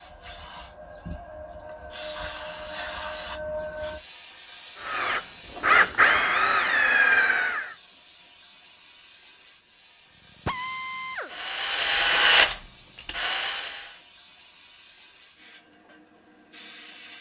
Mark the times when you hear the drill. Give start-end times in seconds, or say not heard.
4.8-7.8, 10.2-14.0.